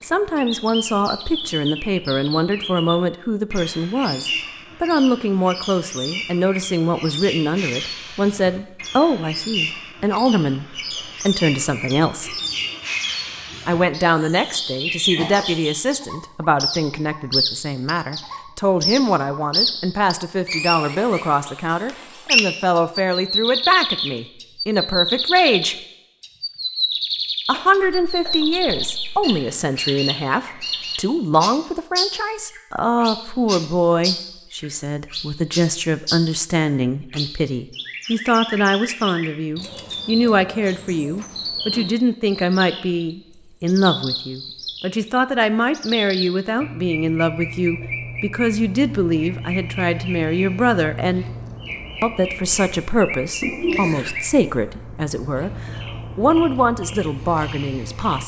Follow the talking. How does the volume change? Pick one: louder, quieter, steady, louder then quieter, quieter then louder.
steady.